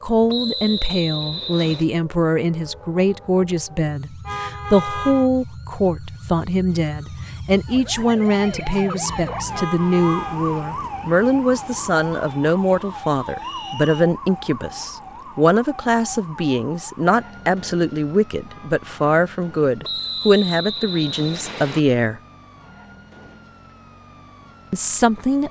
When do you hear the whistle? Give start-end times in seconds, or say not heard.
0.2-1.9, 13.4-14.1, 19.8-21.8.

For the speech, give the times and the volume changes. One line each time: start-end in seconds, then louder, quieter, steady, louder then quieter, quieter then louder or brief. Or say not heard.
0.0-22.2 steady
24.7-25.4 brief.